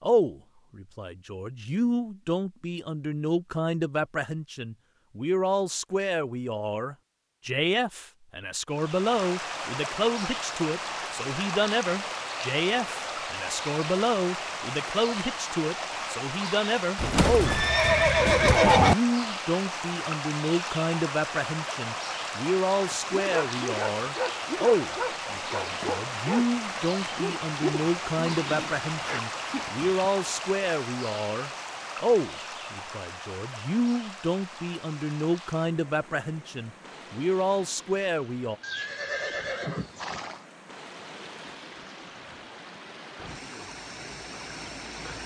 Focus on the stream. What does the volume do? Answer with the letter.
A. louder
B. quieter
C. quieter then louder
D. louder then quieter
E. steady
B.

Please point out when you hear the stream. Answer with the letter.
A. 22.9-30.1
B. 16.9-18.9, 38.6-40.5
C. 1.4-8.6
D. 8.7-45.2
D.